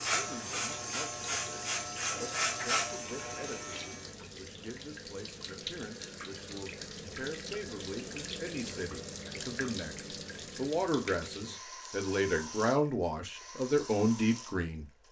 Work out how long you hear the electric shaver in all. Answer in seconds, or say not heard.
4 s.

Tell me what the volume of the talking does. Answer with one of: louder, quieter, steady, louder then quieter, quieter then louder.
louder.